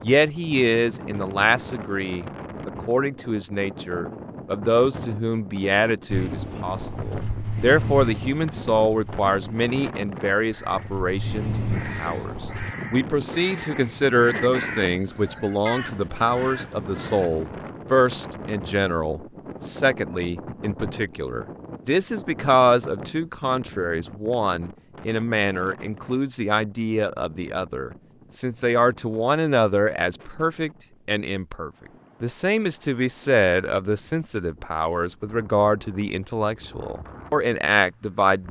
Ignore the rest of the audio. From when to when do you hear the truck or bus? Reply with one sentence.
You can hear the truck or bus from 6.0 to 12.8 s.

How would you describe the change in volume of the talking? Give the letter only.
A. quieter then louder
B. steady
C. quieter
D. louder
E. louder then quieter
B.